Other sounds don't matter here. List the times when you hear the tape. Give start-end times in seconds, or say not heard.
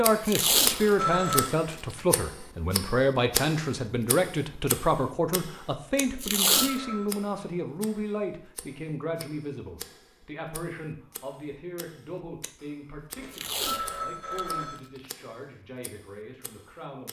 0.2-1.9, 6.2-6.8, 13.3-15.0.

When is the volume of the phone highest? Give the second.
1 s.